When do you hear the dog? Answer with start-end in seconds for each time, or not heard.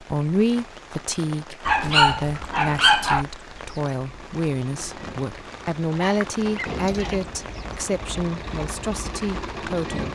1.6-3.2, 6.0-7.2.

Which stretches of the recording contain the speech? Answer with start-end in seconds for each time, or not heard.
0.0-10.0.